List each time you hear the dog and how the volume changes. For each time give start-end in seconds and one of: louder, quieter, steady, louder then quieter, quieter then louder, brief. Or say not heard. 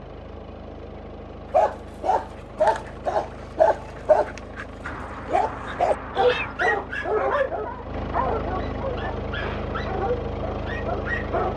1.5-11.5 quieter.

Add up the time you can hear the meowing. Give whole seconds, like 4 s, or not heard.
2 s.